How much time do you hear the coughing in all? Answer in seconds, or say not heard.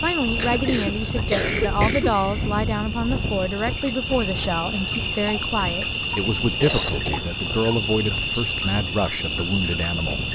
3 s.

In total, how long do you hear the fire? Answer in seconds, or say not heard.
not heard.